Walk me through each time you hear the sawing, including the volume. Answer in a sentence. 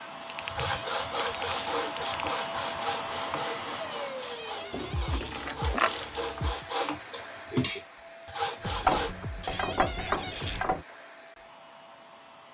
You can hear the sawing from 0.4 to 9.1 s, getting quieter then louder.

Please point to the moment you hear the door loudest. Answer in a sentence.
The volume of the door peaks at 10 seconds.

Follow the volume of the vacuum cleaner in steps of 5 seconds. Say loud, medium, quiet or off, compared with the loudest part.
loud, medium, quiet.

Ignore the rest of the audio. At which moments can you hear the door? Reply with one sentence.
The door can be heard from 0.6 to 1.6 s, from 4.2 to 5.3 s and from 9.4 to 10.7 s.